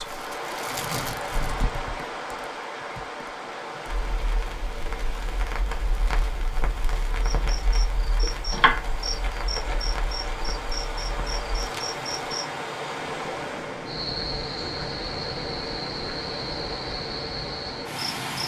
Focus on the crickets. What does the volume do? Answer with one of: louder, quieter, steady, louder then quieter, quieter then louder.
steady.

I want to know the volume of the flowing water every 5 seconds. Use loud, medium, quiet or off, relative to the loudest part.
loud, medium, loud, loud.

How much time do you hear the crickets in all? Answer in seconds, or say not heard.
11 s.